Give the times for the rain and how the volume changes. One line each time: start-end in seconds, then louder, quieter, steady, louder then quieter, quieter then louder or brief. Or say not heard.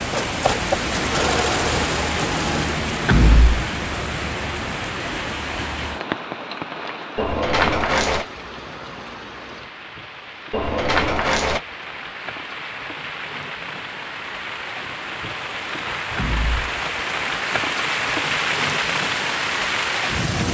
0.0-20.4 quieter then louder.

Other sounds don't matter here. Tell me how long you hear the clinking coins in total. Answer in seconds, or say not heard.
2 s.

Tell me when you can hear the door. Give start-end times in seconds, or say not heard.
3.0-3.6, 16.1-16.6.